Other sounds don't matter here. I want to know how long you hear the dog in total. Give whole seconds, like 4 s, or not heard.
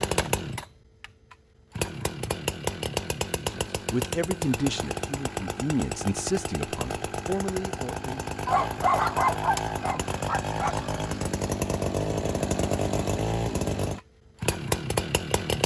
2 s.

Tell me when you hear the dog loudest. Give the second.
9 s.